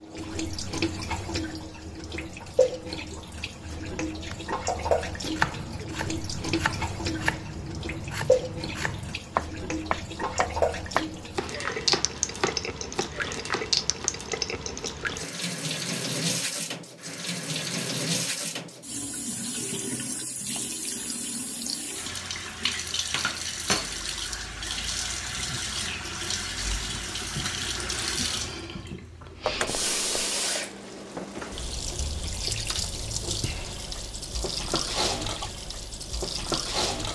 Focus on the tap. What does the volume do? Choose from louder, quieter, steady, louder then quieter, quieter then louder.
steady.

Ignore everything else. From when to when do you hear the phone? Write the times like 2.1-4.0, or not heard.
29.4-30.4.